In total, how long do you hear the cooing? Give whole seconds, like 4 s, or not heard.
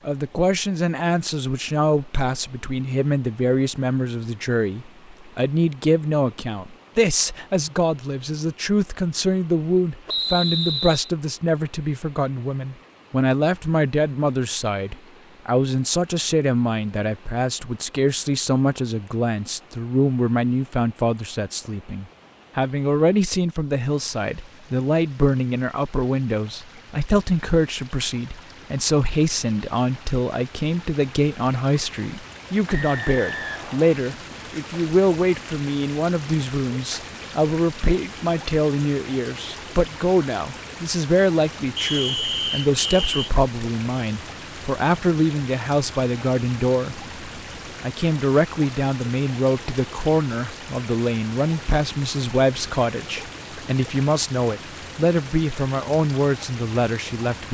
not heard.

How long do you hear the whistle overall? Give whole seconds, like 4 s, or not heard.
4 s.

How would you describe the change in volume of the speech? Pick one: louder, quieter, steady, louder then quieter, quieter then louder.
steady.